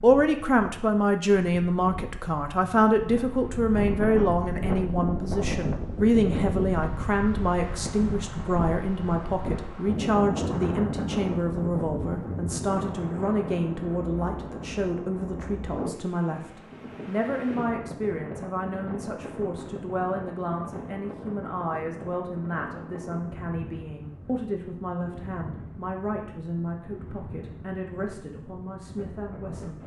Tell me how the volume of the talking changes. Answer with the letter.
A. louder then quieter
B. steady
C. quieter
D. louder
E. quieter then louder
C.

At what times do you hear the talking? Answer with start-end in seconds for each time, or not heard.
0.0-29.8.